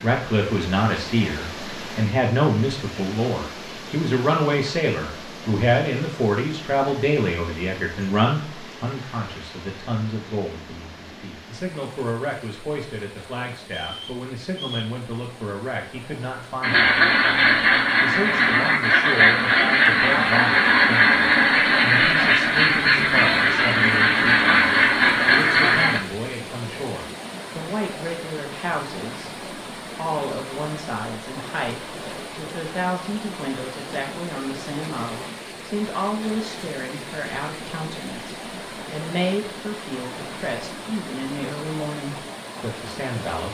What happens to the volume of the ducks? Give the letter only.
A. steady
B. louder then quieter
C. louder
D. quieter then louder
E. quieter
A.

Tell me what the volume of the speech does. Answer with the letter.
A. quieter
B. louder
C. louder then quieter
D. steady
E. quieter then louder
A.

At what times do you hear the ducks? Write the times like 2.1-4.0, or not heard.
16.6-26.0.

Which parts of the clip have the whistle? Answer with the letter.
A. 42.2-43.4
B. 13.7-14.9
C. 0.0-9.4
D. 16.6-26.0
B.